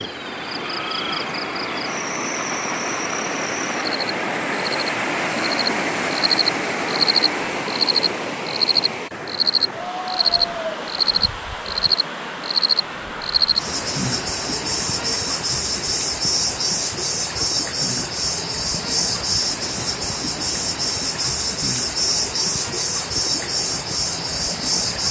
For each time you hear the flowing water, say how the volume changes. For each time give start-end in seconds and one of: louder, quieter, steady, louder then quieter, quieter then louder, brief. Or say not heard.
0.0-25.0 quieter.